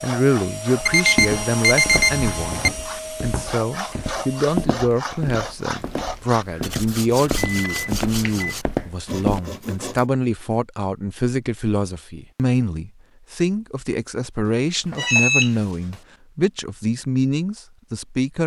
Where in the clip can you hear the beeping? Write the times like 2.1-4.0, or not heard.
0.8-2.7, 7.3-8.6, 14.4-15.5.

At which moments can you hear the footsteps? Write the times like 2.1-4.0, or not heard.
0.9-9.4.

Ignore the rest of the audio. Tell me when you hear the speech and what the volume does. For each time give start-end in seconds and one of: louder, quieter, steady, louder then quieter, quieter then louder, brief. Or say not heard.
0.0-18.4 steady.